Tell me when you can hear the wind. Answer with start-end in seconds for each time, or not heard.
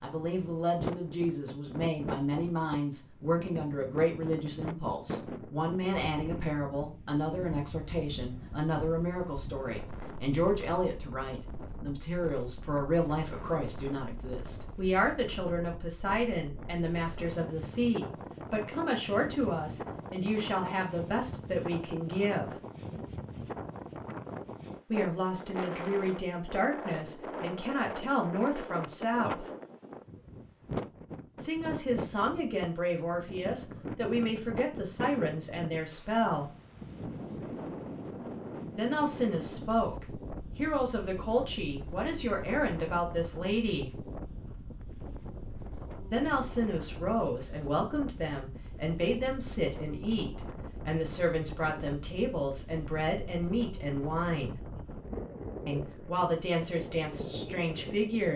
0.0-58.3.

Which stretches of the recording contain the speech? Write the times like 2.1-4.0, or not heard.
0.0-22.5, 24.9-29.4, 31.4-36.5, 38.8-44.0, 46.1-54.6, 55.6-58.3.